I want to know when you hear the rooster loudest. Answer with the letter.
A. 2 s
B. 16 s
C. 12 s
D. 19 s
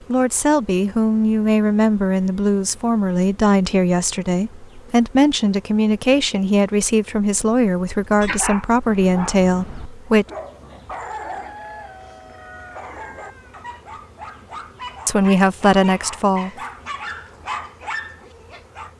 C.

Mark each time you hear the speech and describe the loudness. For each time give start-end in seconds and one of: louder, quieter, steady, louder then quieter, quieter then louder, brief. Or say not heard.
0.1-10.2 steady
15.1-16.5 brief.